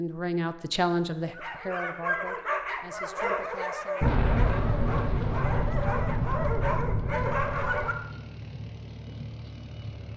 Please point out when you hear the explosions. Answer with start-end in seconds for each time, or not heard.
4.0-7.9.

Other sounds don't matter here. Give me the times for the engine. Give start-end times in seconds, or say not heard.
7.1-10.1.